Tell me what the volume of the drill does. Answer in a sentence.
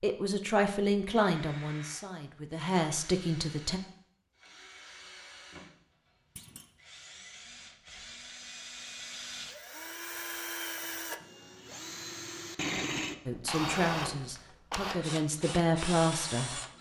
The volume of the drill goes up.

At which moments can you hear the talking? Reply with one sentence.
You can hear the talking from 0.0 to 3.8 s and from 13.2 to 16.6 s.